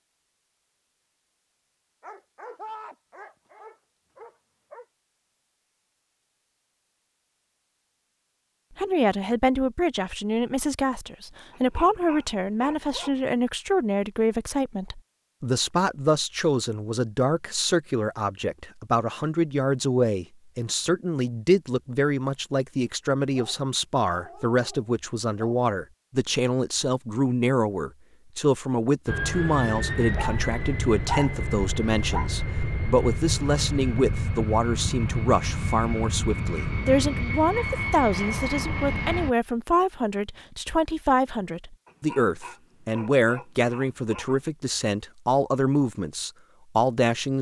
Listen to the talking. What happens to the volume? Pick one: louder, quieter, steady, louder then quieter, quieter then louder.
steady.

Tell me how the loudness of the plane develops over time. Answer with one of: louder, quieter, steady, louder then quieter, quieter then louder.
steady.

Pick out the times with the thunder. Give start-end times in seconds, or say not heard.
not heard.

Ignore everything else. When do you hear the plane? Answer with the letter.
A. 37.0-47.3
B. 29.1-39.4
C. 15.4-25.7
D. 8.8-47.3
B.